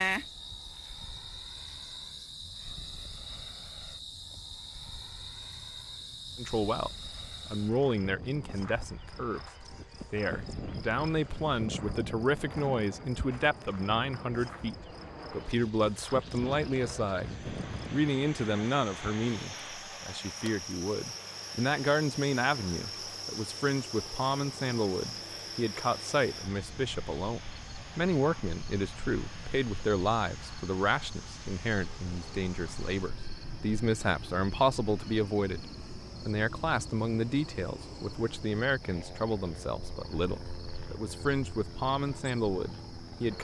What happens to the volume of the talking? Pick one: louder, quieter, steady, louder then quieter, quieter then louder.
steady.